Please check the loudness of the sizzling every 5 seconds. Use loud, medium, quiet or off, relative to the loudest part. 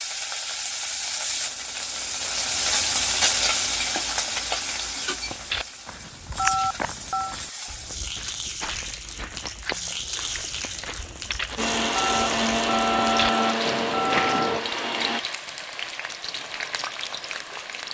loud, medium, medium, medium.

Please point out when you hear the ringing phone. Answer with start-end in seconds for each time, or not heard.
6.3-7.3, 11.9-14.6.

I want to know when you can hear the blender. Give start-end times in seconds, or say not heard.
11.6-15.2.